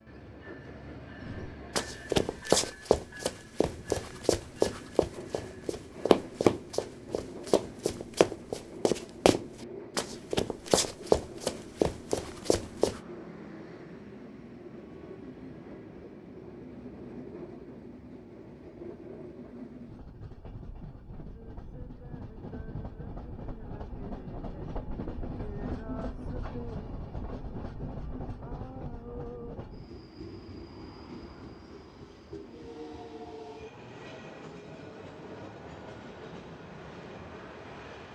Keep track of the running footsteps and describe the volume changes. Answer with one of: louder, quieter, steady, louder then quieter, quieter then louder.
steady.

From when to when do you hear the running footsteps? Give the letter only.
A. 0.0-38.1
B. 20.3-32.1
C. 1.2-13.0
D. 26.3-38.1
C.